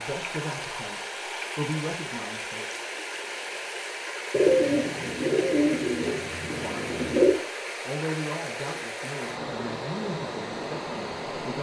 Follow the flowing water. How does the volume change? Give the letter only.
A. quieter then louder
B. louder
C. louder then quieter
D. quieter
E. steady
E.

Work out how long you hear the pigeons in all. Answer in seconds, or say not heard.
3 s.